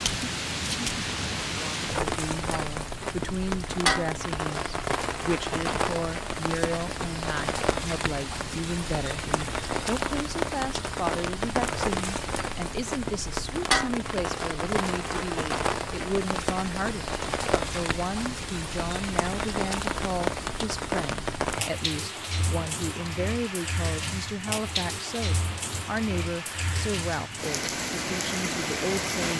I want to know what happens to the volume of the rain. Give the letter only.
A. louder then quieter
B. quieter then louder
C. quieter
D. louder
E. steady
E.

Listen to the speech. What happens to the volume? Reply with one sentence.
The volume of the speech stays about the same.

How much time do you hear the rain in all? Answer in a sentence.
The rain can be heard for 29 seconds in total.